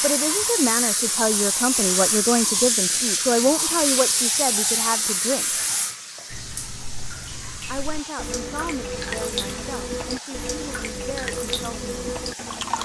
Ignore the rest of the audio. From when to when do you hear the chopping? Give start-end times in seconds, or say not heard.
not heard.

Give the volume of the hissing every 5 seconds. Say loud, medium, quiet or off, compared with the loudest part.
loud, medium, quiet.